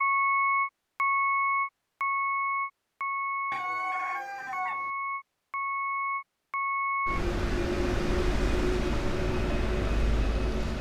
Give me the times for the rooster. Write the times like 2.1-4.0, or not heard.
3.5-4.9.